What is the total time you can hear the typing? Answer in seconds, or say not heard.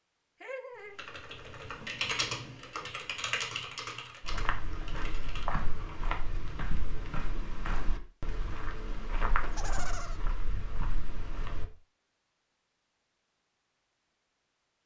5 s.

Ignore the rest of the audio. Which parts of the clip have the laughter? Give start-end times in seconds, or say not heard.
0.4-0.9, 9.4-10.2.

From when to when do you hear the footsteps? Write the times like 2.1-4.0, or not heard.
4.2-11.7.